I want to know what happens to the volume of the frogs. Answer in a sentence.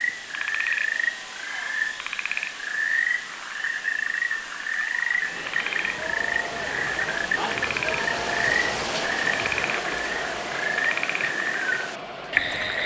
The loudness of the frogs stays about the same.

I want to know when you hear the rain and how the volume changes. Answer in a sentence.
You can hear the rain from 5.1 to 12.8 s, getting louder then quieter.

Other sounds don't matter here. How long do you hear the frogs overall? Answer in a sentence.
The frogs can be heard for 13 seconds in total.